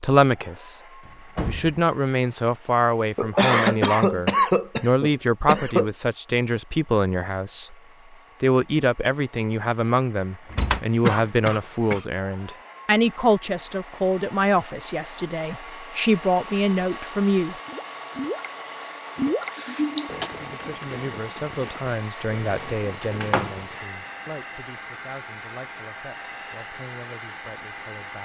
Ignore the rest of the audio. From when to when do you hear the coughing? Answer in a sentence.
The coughing can be heard from 3.1 to 5.8 s, from 11.0 to 12.1 s and from 19.4 to 20.3 s.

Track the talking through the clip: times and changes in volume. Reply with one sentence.
The talking can be heard briefly from 0.0 to 0.8 s; from 1.4 to 7.8 s, at a steady volume; from 8.4 to 17.6 s, at a steady volume; and from 20.4 to 28.2 s, getting quieter.